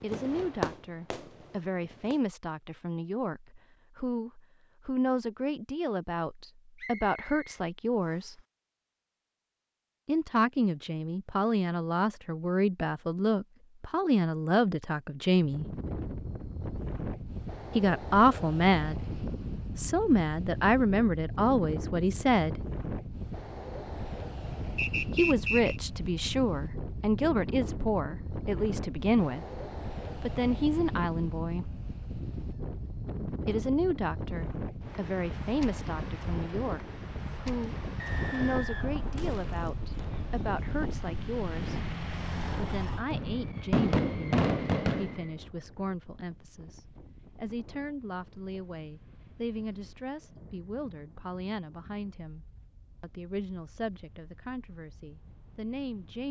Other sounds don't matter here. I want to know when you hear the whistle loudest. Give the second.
25 s.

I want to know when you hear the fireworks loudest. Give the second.
44 s.